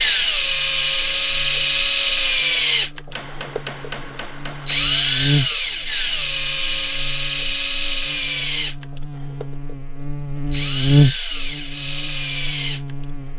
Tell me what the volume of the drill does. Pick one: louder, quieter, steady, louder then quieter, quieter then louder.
quieter.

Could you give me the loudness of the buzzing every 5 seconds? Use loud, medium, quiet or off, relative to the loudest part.
quiet, medium, loud.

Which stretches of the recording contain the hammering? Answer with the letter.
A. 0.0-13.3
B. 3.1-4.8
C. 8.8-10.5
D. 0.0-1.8
B.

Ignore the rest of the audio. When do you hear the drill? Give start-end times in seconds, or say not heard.
0.0-13.1.